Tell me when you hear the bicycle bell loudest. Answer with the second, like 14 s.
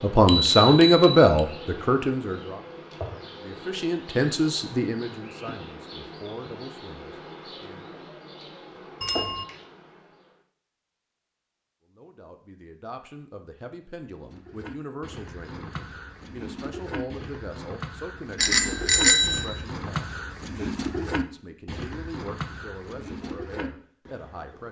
19 s.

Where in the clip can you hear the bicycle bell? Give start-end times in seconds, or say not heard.
0.2-1.4, 9.0-9.4, 18.4-19.5.